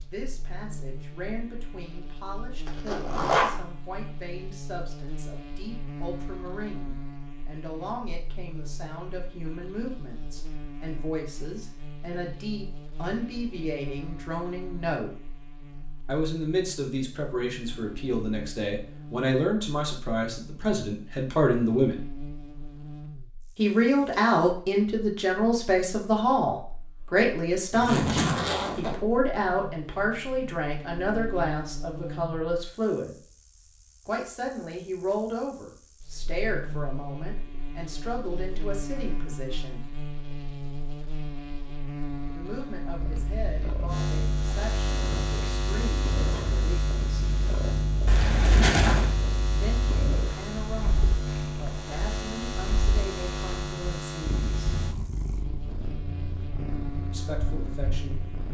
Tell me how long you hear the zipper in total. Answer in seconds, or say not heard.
3 s.